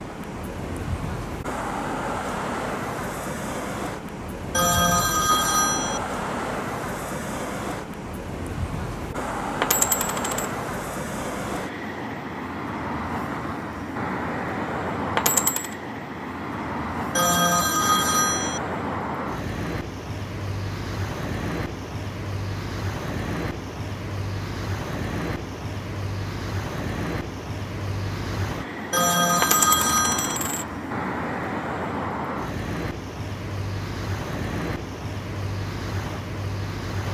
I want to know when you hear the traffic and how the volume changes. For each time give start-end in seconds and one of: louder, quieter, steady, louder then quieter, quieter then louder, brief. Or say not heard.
0.0-37.1 steady.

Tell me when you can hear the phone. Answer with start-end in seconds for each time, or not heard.
4.5-6.0, 17.1-18.6, 28.9-30.4.